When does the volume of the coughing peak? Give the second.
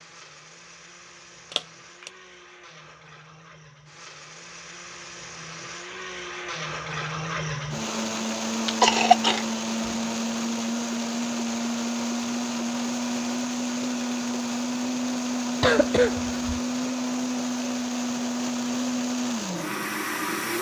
9 s.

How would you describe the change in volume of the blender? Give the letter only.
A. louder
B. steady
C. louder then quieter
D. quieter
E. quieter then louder
A.